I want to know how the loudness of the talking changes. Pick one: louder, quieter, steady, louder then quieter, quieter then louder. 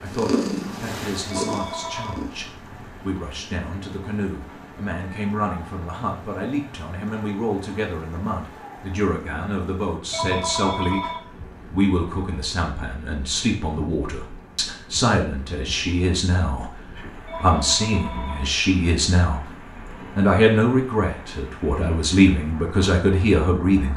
louder.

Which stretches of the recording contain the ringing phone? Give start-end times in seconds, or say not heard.
1.3-2.2, 10.1-11.2, 17.2-18.4.